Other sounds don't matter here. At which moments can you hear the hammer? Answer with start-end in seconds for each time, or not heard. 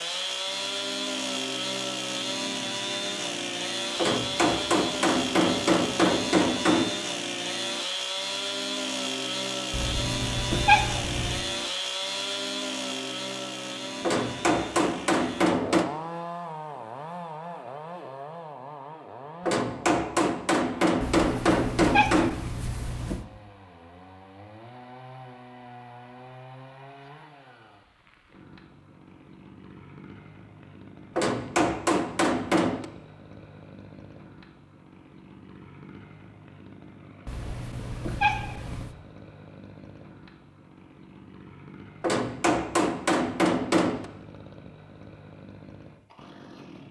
4.0-6.9, 14.0-15.9, 19.4-22.4, 31.1-32.9, 42.0-44.0.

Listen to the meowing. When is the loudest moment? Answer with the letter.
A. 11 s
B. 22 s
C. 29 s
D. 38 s
A.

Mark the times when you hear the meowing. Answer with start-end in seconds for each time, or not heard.
9.7-11.4, 21.0-23.2, 37.2-39.0.